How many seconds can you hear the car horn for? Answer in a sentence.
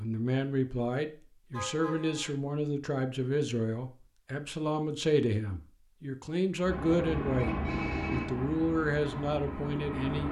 You can hear the car horn for 2 seconds altogether.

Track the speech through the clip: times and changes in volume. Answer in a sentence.
You can hear the speech from 0.0 to 10.2 s, at a steady volume.